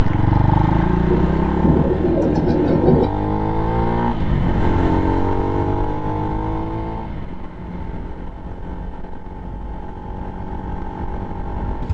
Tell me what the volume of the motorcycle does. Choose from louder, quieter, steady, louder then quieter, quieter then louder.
quieter.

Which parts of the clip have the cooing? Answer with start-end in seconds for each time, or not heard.
1.1-3.0.